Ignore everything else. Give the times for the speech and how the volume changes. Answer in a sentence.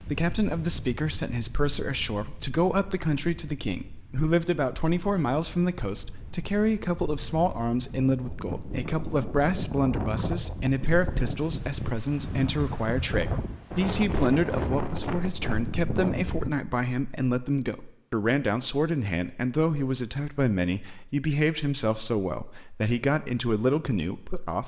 You can hear the speech from 0.0 to 24.6 s, at a steady volume.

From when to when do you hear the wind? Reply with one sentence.
The wind can be heard from 0.0 to 16.5 s.